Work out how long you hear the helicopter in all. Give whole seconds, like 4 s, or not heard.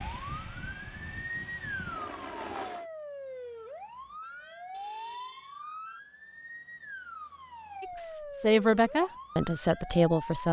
3 s.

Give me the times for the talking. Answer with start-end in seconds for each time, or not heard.
7.8-10.4.